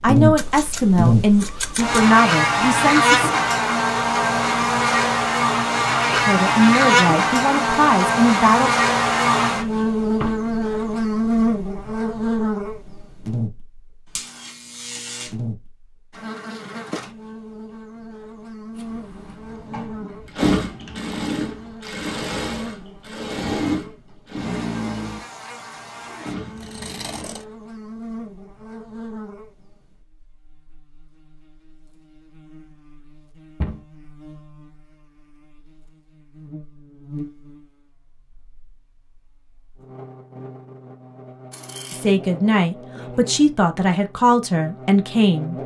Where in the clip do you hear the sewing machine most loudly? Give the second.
21 s.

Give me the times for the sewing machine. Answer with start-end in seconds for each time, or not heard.
18.8-27.6.